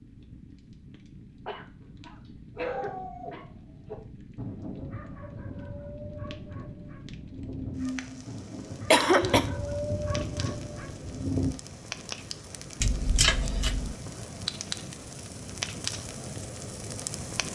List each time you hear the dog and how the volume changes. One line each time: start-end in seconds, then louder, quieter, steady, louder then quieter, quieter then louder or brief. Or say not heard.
1.8-11.6 quieter then louder.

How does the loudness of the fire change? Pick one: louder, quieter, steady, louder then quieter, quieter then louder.
louder.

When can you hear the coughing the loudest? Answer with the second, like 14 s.
9 s.